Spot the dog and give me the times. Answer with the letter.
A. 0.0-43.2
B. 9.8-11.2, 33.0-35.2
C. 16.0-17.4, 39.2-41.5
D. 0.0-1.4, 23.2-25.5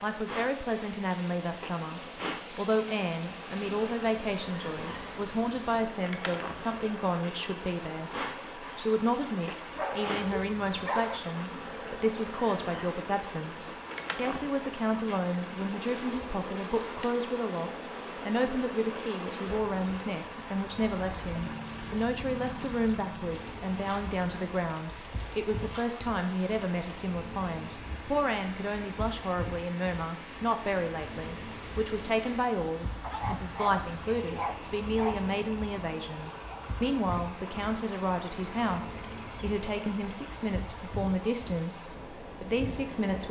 B.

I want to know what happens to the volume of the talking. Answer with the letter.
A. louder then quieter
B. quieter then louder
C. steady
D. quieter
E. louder
C.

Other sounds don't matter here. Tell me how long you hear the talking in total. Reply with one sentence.
You can hear the talking for 43 seconds altogether.